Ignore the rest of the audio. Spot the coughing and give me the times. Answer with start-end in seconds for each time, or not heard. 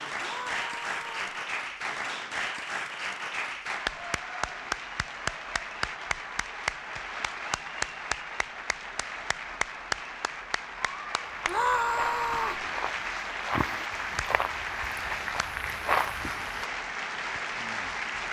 not heard.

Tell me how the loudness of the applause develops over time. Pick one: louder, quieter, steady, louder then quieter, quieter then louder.
steady.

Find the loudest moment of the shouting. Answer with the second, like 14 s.
12 s.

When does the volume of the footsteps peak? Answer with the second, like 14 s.
16 s.